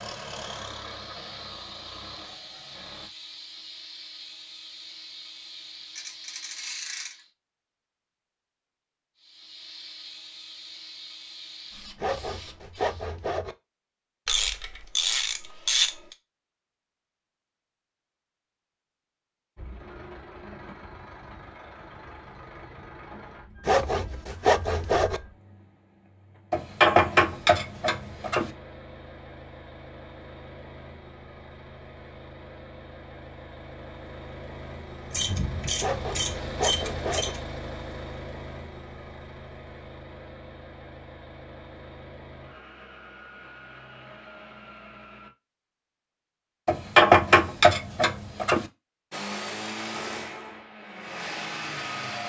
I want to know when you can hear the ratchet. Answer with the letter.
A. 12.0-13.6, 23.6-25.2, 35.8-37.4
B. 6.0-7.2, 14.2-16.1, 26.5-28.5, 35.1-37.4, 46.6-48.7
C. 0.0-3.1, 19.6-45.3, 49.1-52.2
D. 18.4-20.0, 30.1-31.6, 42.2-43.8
B.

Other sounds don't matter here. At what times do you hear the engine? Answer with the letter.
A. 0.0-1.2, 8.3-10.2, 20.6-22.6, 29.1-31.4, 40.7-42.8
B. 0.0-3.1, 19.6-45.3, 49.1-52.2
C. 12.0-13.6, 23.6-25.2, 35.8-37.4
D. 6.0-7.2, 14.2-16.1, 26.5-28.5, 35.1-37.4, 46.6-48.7
B.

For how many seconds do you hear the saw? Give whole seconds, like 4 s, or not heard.
5 s.